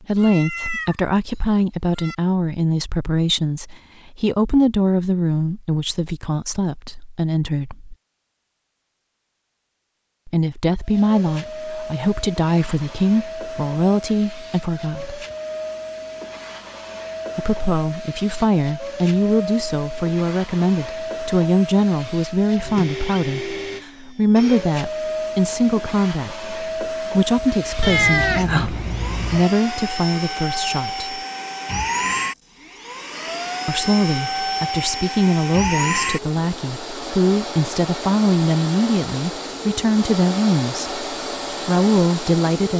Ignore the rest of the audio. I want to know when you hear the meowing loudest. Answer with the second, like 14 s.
28 s.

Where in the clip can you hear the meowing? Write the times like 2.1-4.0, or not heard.
0.1-2.1, 27.8-29.4.